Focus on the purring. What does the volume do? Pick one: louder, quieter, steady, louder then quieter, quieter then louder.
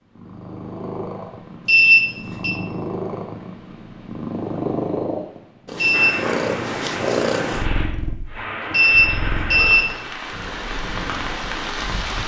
louder then quieter.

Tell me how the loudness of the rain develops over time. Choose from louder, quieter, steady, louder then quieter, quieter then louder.
steady.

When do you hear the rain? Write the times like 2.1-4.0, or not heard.
5.9-12.2.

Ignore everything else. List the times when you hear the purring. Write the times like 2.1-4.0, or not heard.
0.1-12.2.